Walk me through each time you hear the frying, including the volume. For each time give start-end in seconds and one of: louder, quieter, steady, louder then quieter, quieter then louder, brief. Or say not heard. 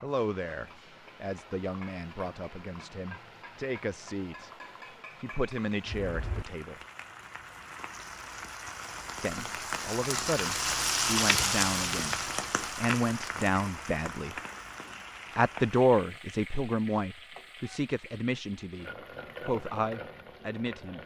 0.0-21.0 louder then quieter.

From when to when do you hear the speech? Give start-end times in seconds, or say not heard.
0.0-4.5, 5.2-6.8, 9.2-12.2, 12.8-14.3, 15.3-21.0.